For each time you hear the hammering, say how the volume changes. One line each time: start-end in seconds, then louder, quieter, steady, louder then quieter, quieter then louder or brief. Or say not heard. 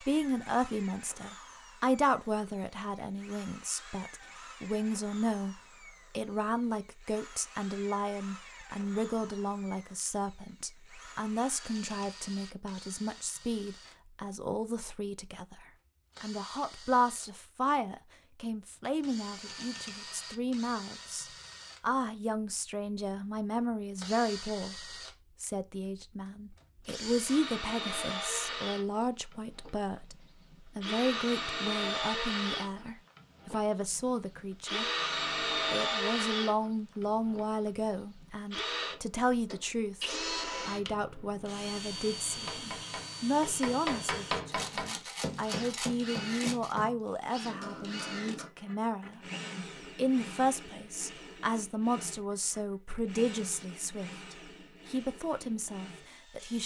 42.3-48.5 louder then quieter.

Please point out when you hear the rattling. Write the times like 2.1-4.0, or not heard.
44.5-46.8.